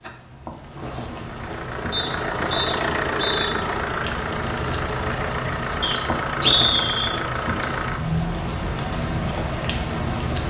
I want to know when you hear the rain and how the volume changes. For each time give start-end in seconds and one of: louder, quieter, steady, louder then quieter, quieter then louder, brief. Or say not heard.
0.0-10.4 louder.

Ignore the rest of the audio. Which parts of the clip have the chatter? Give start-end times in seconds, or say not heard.
not heard.